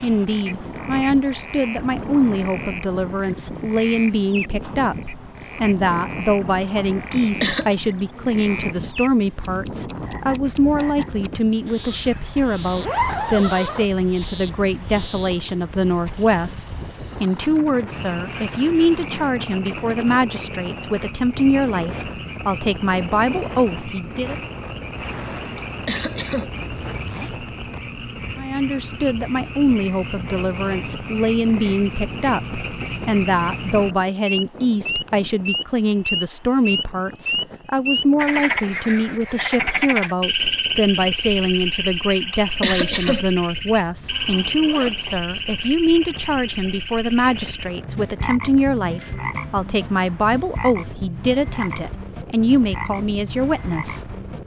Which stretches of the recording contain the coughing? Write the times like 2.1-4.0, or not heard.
7.1-7.8, 25.6-26.5, 42.3-43.2.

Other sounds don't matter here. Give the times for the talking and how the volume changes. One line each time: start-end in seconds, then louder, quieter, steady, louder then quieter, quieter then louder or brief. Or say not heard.
0.0-24.4 steady
28.4-54.0 steady.